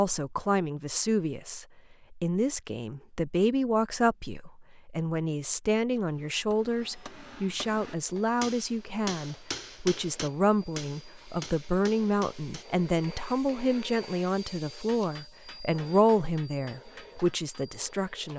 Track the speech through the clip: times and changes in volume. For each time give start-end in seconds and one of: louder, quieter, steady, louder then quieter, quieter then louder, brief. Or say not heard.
0.0-18.3 steady.